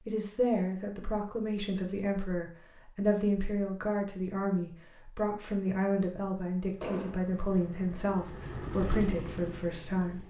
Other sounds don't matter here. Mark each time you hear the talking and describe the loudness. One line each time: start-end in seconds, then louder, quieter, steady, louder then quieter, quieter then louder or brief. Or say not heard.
0.1-10.2 steady.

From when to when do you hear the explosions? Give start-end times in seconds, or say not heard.
6.8-7.3.